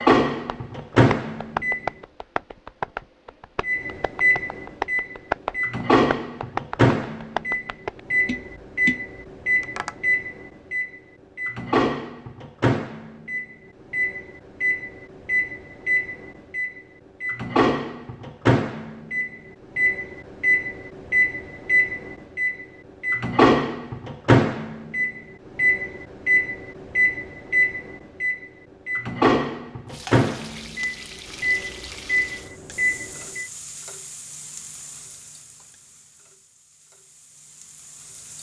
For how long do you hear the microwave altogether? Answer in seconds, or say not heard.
32 s.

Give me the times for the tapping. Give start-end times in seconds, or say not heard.
0.5-10.2.